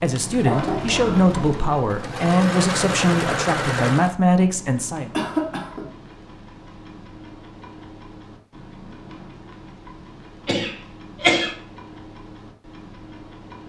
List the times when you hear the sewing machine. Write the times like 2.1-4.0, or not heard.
0.1-4.2.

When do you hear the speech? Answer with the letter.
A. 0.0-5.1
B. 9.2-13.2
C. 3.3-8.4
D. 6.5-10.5
A.